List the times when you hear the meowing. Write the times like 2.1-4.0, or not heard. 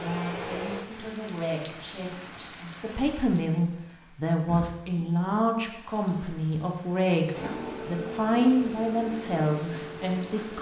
not heard.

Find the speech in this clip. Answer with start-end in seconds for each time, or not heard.
0.0-10.5.